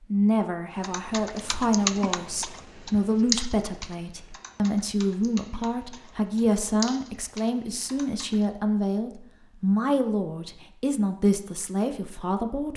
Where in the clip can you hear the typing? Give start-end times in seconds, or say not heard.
0.7-8.4.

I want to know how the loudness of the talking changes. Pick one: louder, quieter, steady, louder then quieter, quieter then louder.
steady.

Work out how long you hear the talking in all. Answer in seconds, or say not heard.
13 s.